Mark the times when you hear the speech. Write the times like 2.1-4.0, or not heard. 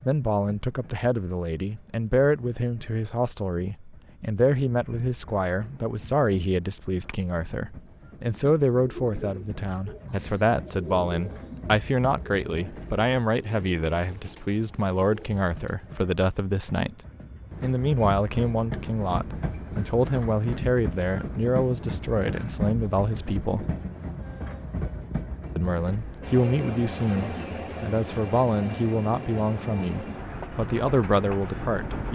0.0-17.0, 17.6-23.6, 25.6-32.0.